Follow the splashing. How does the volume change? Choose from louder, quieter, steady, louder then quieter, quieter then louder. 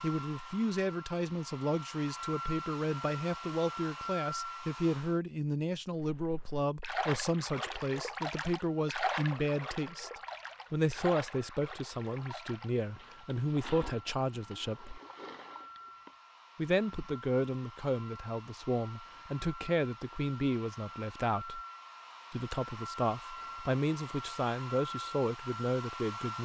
quieter.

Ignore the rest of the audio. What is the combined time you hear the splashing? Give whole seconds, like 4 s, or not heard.
10 s.